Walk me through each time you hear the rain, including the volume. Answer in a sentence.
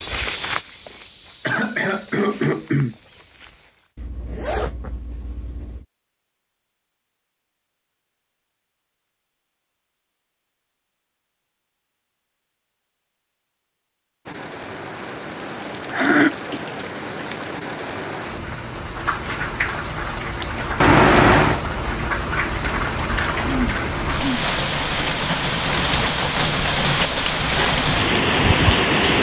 You can hear the rain from 14.2 to 29.1 s, getting louder.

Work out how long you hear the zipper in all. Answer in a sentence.
You can hear the zipper for 3 seconds altogether.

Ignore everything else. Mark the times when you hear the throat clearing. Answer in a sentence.
You can hear the throat clearing from 1.4 to 3.0 s, from 15.9 to 16.6 s and from 23.4 to 24.4 s.